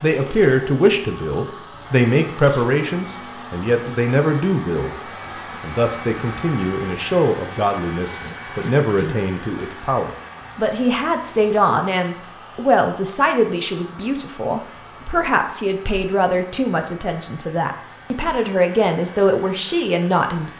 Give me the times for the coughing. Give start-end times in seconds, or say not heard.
8.2-9.2.